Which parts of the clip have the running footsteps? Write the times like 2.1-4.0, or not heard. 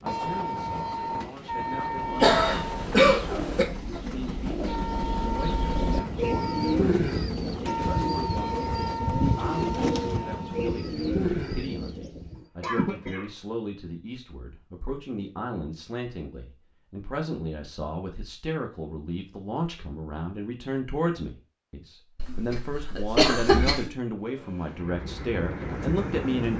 not heard.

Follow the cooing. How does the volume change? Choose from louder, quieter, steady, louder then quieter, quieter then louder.
louder.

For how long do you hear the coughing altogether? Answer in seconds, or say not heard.
4 s.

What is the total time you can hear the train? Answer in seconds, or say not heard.
13 s.